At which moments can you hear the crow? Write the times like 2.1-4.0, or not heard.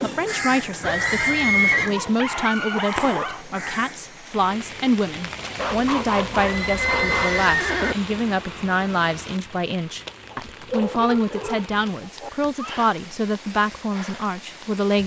0.0-4.1.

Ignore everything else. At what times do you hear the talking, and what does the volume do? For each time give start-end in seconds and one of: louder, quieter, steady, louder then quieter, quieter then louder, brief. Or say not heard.
0.0-15.0 steady.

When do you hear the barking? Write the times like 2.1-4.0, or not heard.
1.9-3.4, 5.5-7.5, 10.3-12.3.